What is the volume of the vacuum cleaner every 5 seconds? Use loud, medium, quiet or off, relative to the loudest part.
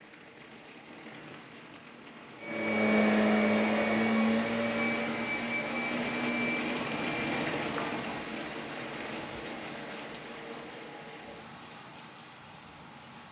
loud, medium, off.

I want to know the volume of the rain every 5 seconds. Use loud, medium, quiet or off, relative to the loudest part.
medium, loud, medium.